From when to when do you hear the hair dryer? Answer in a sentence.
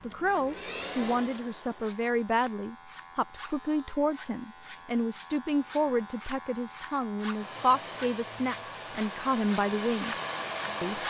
The hair dryer can be heard from 0.0 to 2.0 s and from 7.3 to 11.0 s.